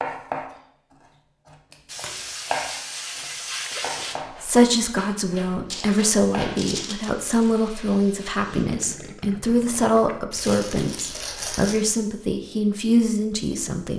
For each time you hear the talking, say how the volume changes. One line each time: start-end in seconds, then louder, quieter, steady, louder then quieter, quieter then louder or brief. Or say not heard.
4.4-13.9 steady.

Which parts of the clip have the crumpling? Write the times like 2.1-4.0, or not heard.
1.7-2.3, 5.7-7.3, 10.3-11.8.